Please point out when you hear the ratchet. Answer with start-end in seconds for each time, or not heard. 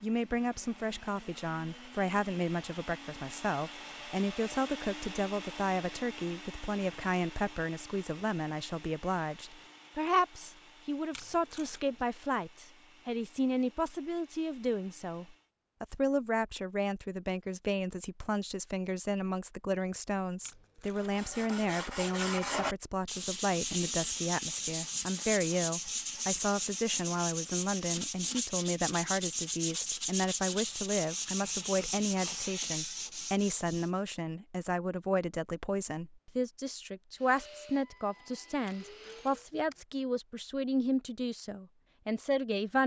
not heard.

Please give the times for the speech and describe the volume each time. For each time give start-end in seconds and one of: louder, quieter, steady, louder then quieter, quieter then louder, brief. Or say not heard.
0.0-42.8 steady.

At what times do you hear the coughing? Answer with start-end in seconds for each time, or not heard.
not heard.